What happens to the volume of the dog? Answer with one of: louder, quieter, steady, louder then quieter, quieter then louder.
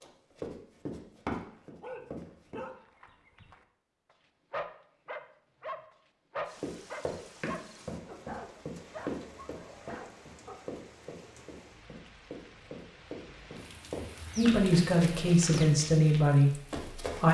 louder then quieter.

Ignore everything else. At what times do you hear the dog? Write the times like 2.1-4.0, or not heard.
1.5-10.6.